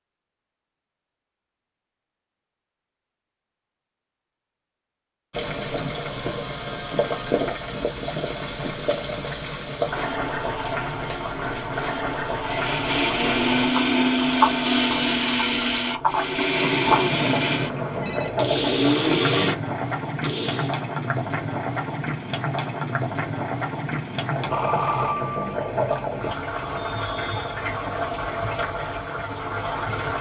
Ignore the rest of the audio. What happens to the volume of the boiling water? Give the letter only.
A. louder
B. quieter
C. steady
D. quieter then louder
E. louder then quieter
C.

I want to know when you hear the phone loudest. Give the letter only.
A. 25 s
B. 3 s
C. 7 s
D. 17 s
A.